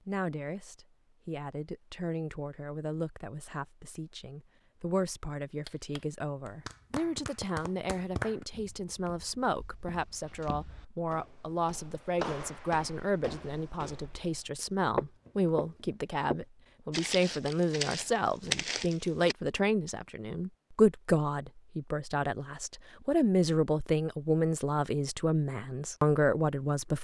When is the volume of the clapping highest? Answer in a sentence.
The loudest moment of the clapping is at 8 seconds.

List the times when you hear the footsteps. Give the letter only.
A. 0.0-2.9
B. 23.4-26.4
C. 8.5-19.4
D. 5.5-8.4
C.